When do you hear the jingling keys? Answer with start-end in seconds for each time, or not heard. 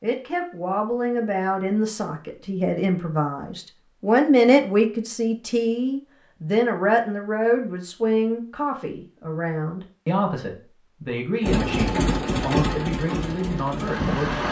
not heard.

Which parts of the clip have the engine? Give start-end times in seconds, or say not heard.
11.4-14.4.